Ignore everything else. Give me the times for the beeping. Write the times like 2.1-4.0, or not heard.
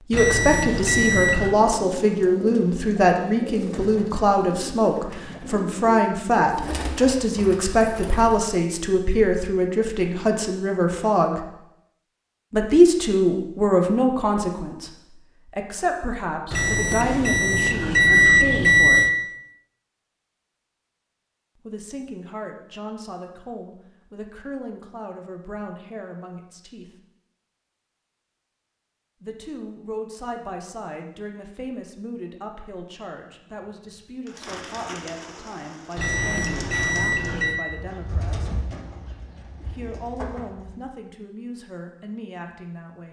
0.1-1.6, 16.5-19.1, 36.0-37.6.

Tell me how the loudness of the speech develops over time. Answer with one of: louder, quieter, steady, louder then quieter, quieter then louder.
quieter.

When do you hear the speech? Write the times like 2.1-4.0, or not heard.
0.0-11.4, 12.5-19.1, 21.6-26.9, 29.2-38.5, 39.6-43.0.